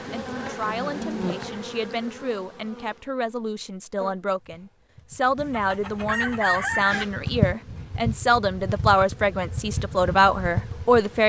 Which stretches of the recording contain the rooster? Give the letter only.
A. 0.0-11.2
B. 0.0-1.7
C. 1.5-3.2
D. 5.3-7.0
D.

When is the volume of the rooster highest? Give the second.
7 s.